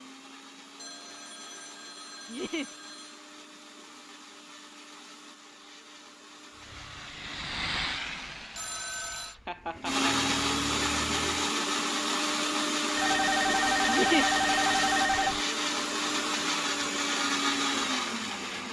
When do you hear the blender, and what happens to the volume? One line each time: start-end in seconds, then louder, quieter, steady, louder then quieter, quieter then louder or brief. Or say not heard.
0.0-18.6 louder.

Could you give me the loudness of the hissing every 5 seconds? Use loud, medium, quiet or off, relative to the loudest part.
off, loud, medium, off.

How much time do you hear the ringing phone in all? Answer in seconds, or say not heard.
6 s.